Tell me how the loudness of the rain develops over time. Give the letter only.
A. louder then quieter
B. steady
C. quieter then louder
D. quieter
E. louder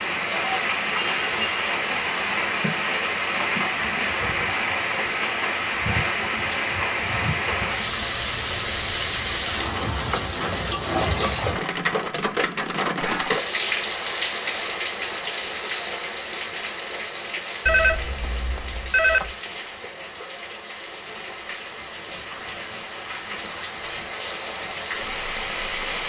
D.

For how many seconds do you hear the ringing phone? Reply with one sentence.
The ringing phone can be heard for 2 seconds in total.